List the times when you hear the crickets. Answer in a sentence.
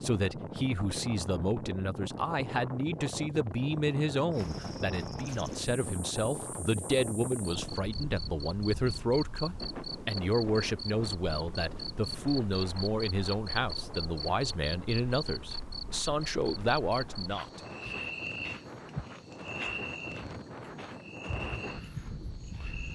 The crickets can be heard from 4.3 to 22.9 s.